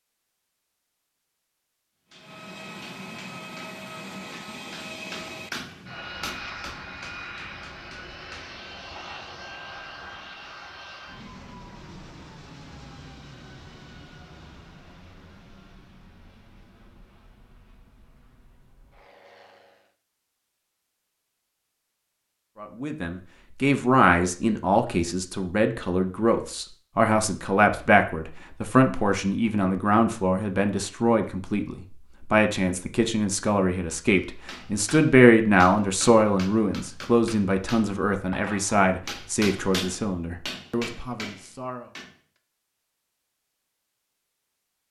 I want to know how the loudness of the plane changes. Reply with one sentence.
The volume of the plane goes down.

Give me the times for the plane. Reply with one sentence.
You can hear the plane from 2.1 to 19.9 s.